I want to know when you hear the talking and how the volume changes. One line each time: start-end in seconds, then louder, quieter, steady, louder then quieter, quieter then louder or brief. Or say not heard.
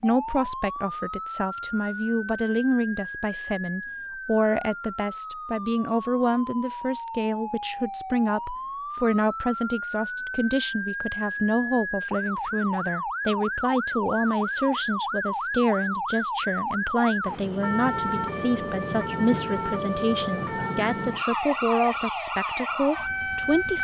0.0-23.7 steady.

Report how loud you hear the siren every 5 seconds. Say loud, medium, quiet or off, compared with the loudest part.
medium, medium, loud, loud, loud.